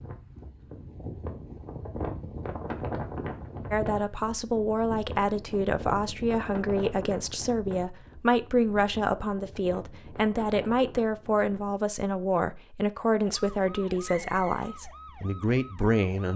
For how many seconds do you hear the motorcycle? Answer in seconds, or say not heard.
not heard.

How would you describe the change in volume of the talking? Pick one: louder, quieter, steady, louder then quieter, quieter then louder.
steady.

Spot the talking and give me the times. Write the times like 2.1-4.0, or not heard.
3.7-16.3.